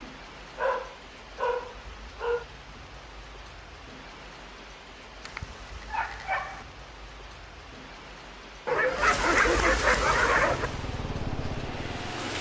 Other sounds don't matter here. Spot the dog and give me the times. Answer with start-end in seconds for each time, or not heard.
0.6-2.5, 5.2-6.7, 8.7-10.7.